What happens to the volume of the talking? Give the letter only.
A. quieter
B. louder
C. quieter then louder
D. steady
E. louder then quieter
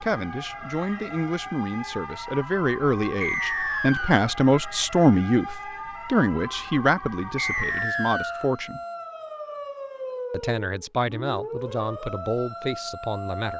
E.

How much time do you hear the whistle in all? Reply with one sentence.
You can hear the whistle for 2 seconds altogether.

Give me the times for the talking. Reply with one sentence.
The talking can be heard from 0.0 to 8.8 s and from 10.3 to 13.5 s.